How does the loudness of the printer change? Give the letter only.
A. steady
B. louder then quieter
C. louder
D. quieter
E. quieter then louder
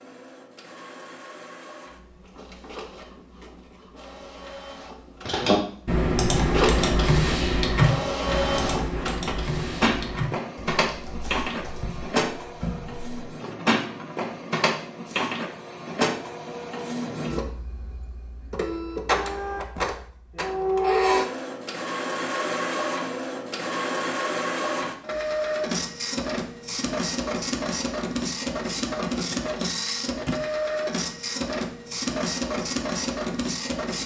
C.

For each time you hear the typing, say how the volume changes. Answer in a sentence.
You can hear the typing from 5.2 to 13.1 s, getting quieter.